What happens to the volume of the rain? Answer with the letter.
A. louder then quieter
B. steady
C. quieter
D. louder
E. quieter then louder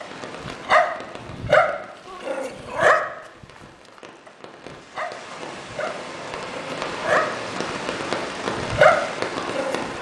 E.